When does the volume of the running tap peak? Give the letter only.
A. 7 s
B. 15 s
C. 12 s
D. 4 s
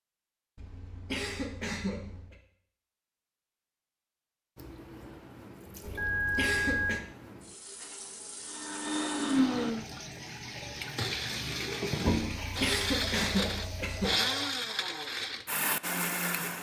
C.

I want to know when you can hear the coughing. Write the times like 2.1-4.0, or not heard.
0.6-2.4, 5.8-7.0, 12.3-14.1.